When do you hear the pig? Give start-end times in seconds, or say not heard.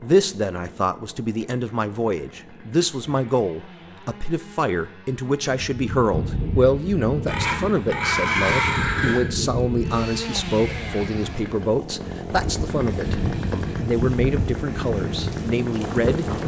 7.2-9.2.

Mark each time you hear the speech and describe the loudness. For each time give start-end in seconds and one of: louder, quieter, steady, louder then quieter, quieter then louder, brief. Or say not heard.
0.0-16.4 steady.